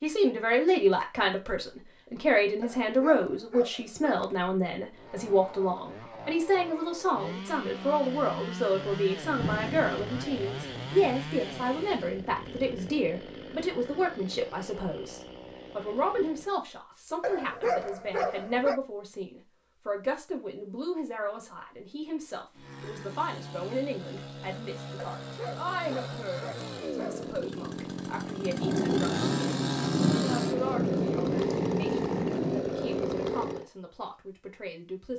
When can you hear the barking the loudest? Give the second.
18 s.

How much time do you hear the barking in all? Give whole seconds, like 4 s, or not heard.
6 s.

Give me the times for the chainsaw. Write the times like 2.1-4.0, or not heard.
4.9-16.6, 22.6-33.7.